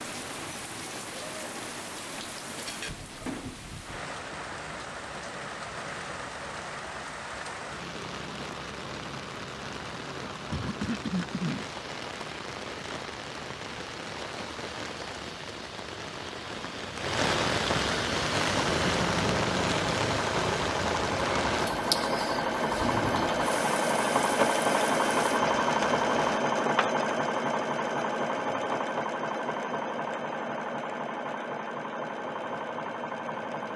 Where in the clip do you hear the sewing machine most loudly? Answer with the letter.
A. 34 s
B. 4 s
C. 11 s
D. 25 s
D.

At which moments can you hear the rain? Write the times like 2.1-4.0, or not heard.
0.0-26.4.